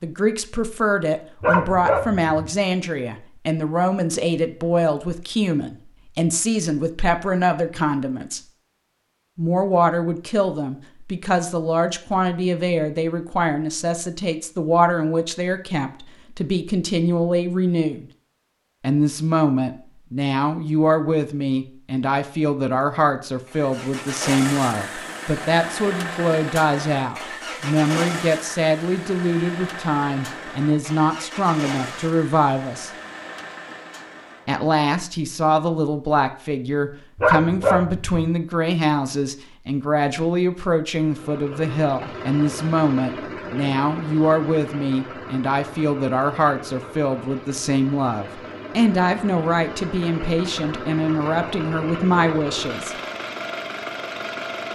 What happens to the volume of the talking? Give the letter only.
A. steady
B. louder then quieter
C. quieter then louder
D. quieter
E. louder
A.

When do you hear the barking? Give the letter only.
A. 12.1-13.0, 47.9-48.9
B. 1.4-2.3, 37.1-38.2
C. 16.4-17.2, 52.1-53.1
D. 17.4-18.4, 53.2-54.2
B.